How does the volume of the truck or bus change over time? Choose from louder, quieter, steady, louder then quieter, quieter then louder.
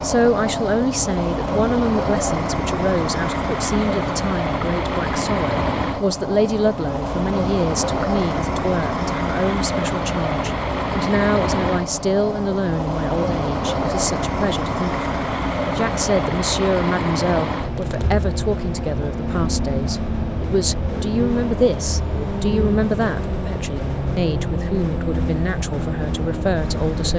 steady.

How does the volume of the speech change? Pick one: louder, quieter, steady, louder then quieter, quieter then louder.
steady.